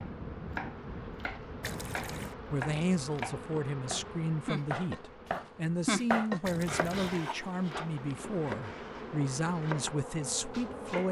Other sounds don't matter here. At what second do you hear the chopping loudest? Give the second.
6 s.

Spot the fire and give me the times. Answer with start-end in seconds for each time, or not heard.
not heard.